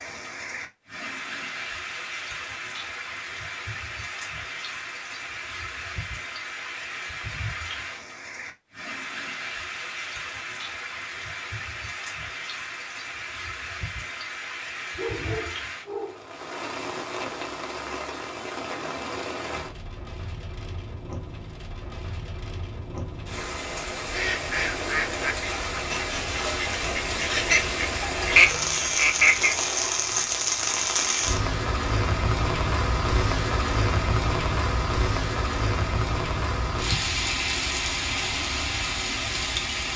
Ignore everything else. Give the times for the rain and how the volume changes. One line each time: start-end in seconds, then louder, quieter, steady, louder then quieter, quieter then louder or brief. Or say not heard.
0.0-39.9 louder.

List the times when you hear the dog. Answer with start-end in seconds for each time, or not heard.
14.9-16.4.